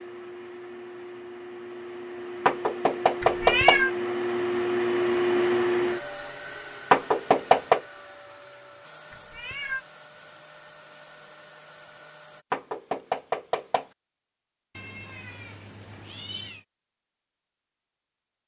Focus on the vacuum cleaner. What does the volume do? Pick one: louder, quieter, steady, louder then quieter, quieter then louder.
louder then quieter.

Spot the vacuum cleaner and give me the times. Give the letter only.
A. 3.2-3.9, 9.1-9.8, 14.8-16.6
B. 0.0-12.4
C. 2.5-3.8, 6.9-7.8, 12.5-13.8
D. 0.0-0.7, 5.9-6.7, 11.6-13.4
B.